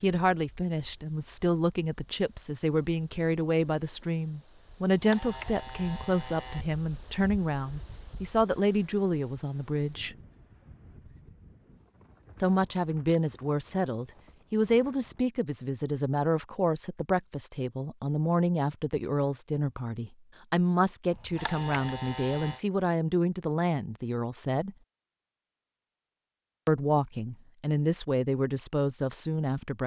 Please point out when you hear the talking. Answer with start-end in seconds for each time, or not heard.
0.0-10.2, 12.4-24.8, 26.6-29.8.